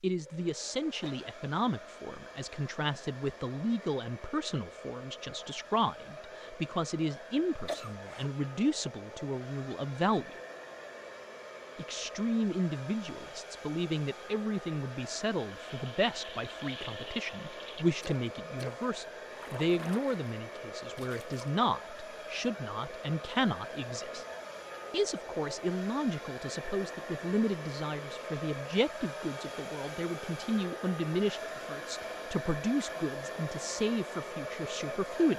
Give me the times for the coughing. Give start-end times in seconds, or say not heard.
7.5-8.3.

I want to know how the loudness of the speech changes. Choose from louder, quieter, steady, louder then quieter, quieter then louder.
steady.